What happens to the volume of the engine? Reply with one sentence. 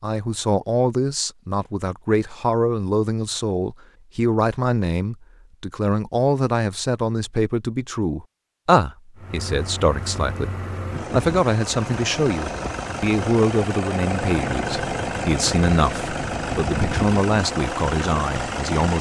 The loudness of the engine goes up.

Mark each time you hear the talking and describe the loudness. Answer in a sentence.
You can hear the talking from 0.0 to 18.9 s, at a steady volume.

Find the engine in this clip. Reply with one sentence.
The engine can be heard from 9.2 to 18.9 s.